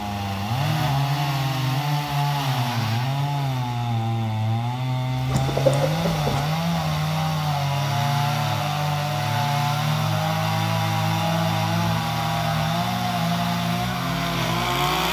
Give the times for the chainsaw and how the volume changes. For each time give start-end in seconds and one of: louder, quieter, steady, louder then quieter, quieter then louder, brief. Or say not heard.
0.0-15.0 steady.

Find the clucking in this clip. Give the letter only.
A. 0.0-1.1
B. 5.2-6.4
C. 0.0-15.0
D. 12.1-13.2
B.